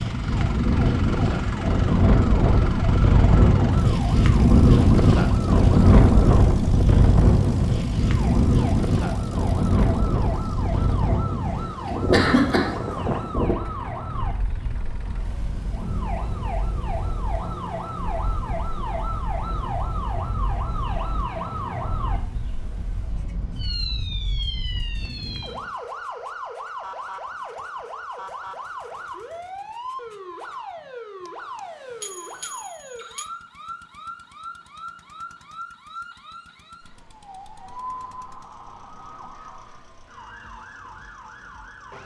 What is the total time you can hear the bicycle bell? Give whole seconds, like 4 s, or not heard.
2 s.